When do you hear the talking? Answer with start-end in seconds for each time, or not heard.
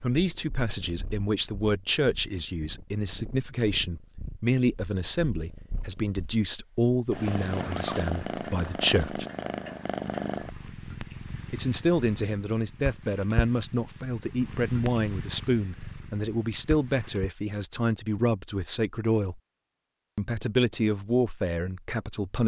0.0-9.2, 11.5-19.4, 20.1-22.4.